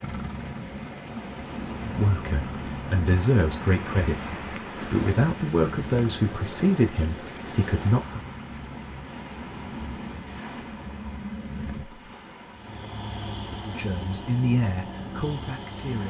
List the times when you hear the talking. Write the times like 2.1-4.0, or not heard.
1.8-8.2, 13.6-16.0.